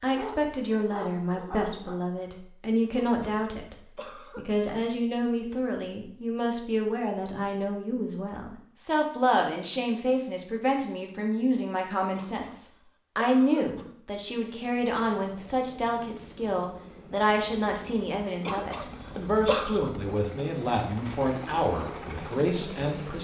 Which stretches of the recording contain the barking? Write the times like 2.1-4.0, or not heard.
0.1-1.9.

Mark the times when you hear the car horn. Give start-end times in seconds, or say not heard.
not heard.